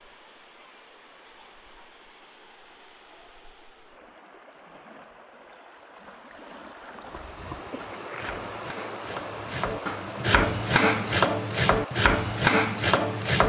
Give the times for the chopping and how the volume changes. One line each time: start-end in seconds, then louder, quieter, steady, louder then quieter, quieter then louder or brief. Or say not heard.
7.0-13.4 louder.